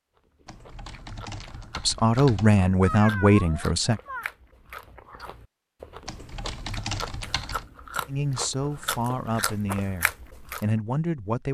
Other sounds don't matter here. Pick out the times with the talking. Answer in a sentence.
The talking can be heard from 1.8 to 4.0 s and from 8.1 to 11.4 s.